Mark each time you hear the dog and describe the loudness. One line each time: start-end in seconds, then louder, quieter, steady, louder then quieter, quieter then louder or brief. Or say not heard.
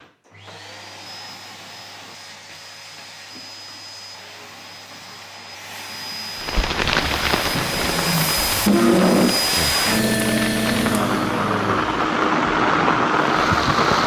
not heard.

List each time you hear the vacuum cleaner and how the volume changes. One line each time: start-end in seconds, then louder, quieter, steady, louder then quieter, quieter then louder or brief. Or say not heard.
0.0-14.0 louder then quieter.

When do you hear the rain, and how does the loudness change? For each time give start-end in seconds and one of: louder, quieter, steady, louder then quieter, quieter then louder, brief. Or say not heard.
6.3-14.0 quieter then louder.